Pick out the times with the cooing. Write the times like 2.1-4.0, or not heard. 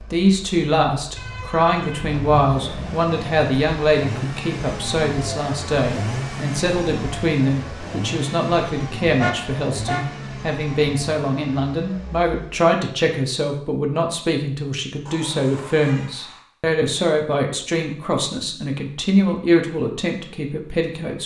not heard.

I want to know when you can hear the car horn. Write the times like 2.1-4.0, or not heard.
1.1-3.0, 9.2-10.1, 15.1-16.4.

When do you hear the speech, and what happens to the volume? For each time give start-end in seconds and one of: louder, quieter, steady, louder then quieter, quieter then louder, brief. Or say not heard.
0.0-21.2 steady.